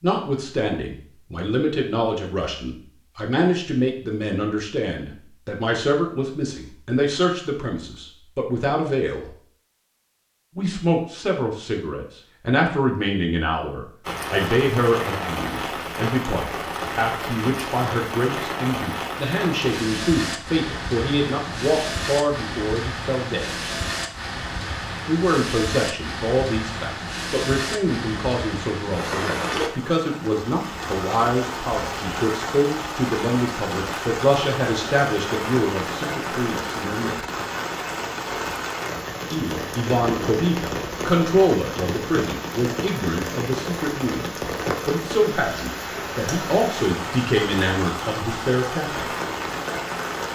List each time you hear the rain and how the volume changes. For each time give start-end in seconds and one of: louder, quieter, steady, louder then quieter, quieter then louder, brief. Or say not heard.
14.0-50.2 steady.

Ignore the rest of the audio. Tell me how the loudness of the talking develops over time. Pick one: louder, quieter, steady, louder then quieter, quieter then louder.
steady.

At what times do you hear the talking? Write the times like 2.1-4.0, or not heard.
0.0-9.3, 10.6-23.5, 25.1-37.3, 39.3-44.2, 44.9-49.1.